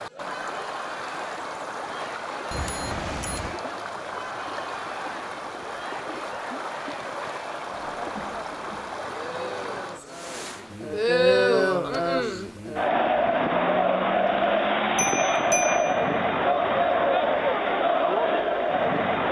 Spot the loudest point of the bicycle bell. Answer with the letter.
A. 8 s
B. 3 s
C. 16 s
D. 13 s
C.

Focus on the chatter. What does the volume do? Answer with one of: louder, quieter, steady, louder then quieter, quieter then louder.
louder.